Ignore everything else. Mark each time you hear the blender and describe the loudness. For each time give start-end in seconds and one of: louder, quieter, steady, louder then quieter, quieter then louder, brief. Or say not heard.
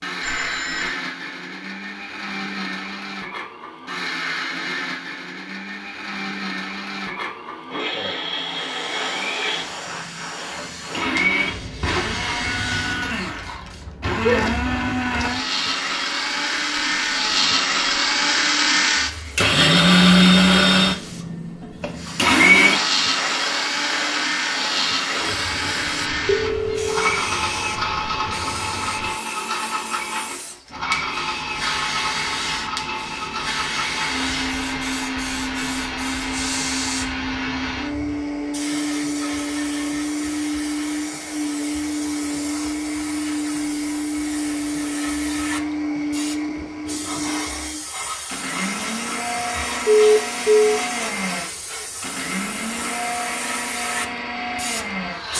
0.0-55.3 louder then quieter.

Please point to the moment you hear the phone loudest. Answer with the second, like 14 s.
50 s.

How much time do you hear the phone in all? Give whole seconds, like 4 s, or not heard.
3 s.